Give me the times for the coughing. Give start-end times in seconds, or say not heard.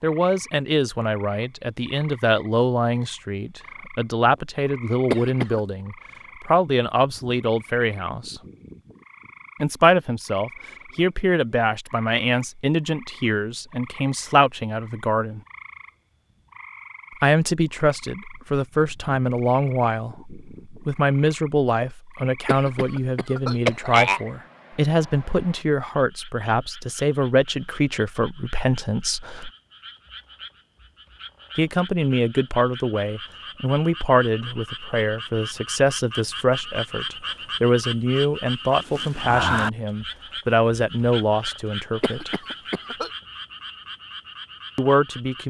5.1-5.6, 22.4-24.2, 42.0-43.1.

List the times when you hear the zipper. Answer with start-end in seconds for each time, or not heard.
not heard.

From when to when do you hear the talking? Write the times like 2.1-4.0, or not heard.
0.0-8.4, 9.6-15.4, 17.2-29.5, 31.6-42.4, 44.8-45.4.